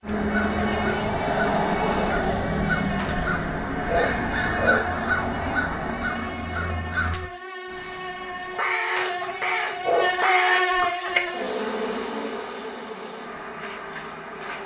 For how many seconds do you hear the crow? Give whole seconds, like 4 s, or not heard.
11 s.